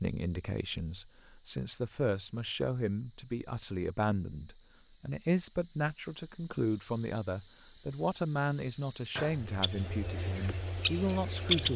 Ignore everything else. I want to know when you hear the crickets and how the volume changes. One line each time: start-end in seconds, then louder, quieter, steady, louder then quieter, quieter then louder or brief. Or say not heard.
0.0-11.7 louder.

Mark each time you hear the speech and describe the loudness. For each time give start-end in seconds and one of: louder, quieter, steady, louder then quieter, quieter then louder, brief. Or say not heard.
0.0-11.7 steady.